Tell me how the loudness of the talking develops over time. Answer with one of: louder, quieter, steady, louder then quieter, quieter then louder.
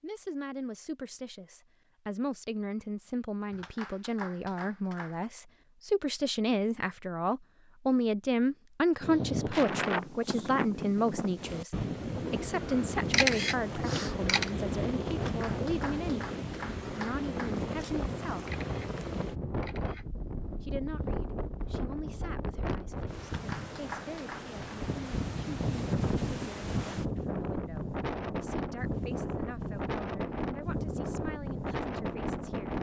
louder then quieter.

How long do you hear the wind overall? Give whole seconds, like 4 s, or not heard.
24 s.